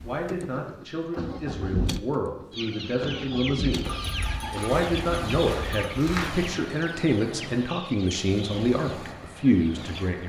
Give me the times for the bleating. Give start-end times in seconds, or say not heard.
3.8-6.5.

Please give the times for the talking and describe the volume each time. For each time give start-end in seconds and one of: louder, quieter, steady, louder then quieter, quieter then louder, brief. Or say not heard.
0.0-10.2 louder.